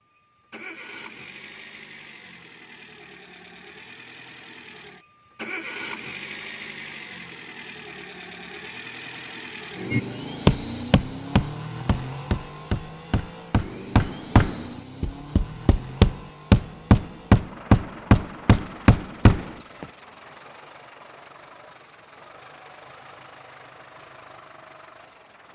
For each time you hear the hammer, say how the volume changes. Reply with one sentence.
You can hear the hammer from 9.9 to 19.9 s, getting quieter then louder.